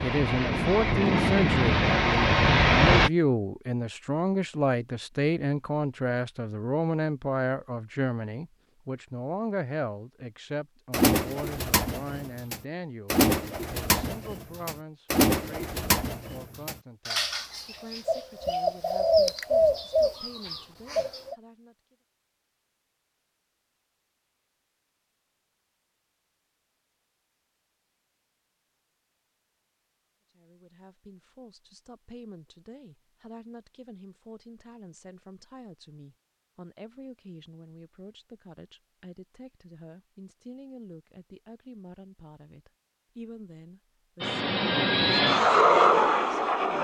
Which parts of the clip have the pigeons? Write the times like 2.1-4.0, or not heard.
10.9-21.4.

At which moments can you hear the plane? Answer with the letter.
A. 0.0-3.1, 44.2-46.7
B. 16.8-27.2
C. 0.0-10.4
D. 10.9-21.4
A.